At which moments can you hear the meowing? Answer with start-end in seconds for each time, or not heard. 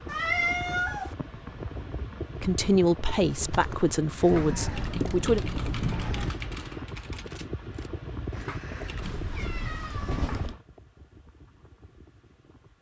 0.1-1.1, 4.3-6.3, 9.0-10.6.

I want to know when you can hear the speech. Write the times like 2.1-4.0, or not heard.
2.4-5.4.